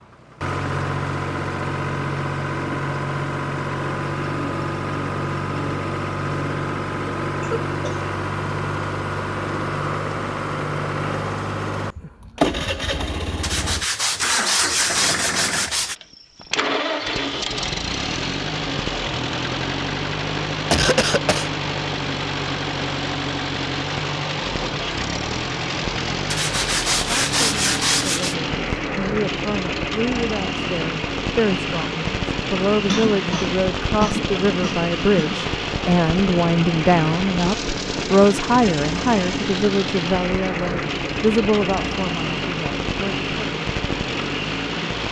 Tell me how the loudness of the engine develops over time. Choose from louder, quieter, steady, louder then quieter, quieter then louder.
steady.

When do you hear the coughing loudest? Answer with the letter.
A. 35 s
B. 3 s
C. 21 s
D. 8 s
C.